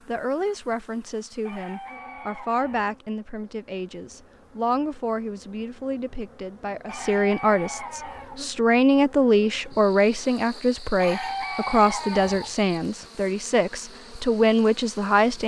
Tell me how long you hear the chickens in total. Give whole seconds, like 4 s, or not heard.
5 s.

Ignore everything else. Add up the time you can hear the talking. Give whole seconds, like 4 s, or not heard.
15 s.